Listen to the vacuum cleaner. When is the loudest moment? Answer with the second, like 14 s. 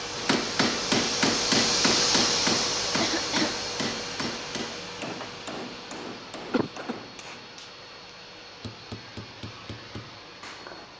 2 s.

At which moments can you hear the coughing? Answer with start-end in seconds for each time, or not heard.
2.9-3.5, 6.5-6.9.